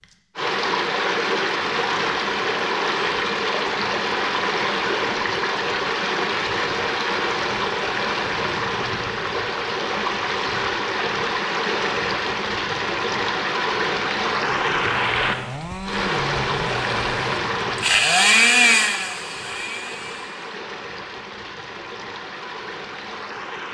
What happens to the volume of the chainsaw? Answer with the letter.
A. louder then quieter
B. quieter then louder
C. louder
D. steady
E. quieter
A.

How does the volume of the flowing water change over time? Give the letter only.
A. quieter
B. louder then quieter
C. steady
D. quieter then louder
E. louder
A.